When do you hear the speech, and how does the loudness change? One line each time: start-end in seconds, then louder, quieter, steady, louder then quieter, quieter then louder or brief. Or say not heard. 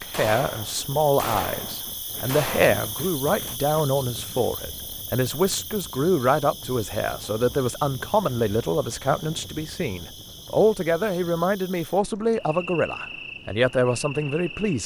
0.0-14.8 steady.